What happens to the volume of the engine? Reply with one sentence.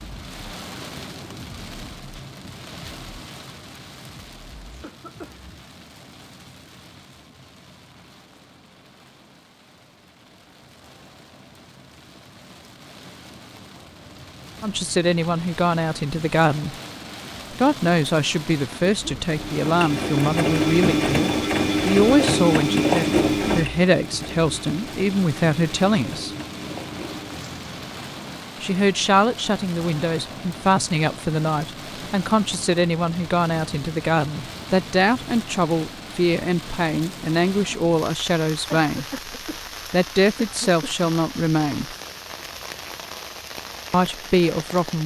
The loudness of the engine goes down.